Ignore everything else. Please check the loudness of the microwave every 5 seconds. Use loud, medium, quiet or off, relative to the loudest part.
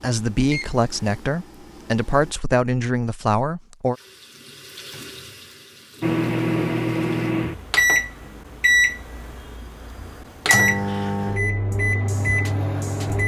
quiet, loud, loud.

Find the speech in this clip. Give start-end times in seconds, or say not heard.
0.0-4.0.